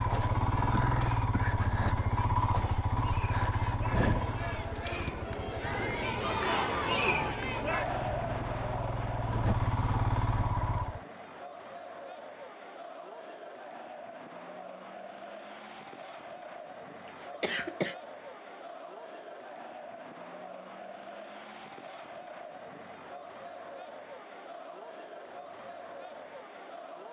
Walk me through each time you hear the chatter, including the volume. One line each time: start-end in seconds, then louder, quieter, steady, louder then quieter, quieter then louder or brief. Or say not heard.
0.0-27.0 louder then quieter.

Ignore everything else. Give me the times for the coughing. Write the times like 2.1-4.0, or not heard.
0.7-1.6, 17.1-17.9.